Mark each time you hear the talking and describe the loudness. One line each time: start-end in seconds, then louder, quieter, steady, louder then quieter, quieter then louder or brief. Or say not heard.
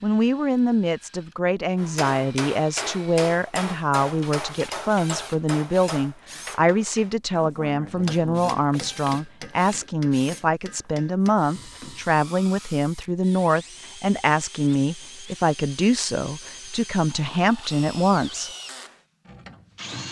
0.0-18.5 steady.